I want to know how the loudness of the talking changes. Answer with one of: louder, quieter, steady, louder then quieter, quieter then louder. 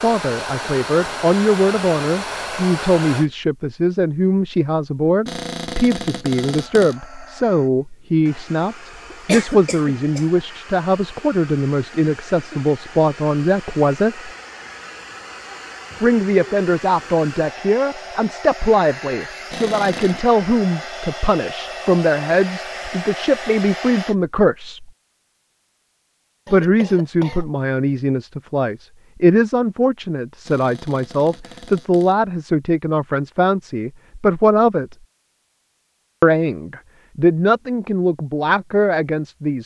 steady.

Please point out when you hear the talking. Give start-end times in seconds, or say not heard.
0.0-14.3, 16.0-24.9, 26.5-35.0, 36.2-39.6.